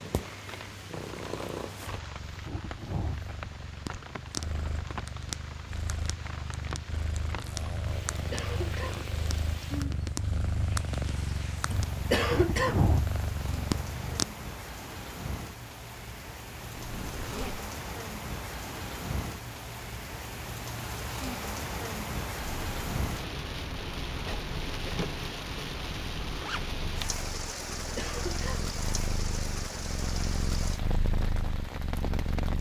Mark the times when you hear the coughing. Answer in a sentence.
The coughing can be heard from 8.3 to 9.1 s, from 12.1 to 12.9 s and from 27.9 to 28.6 s.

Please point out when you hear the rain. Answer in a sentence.
You can hear the rain from 0.0 to 32.5 s.